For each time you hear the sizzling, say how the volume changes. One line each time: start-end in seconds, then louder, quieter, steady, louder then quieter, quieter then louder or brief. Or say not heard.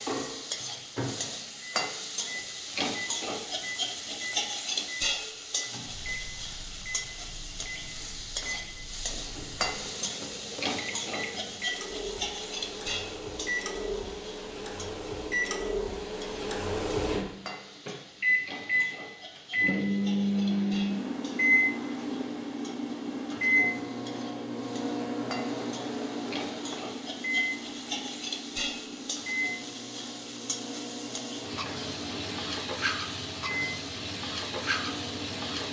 0.0-35.6 quieter then louder.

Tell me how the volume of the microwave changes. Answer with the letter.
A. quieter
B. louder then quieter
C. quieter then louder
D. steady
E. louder
B.